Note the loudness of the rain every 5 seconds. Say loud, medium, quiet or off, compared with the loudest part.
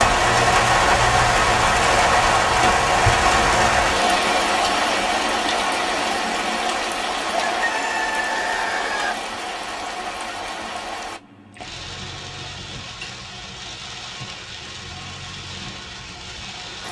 loud, medium, quiet, quiet.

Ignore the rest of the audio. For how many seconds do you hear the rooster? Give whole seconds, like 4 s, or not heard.
2 s.